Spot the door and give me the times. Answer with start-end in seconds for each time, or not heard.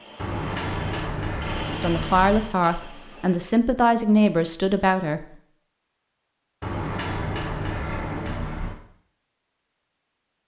0.1-2.5, 6.6-8.8.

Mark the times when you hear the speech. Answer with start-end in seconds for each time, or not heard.
1.7-5.2.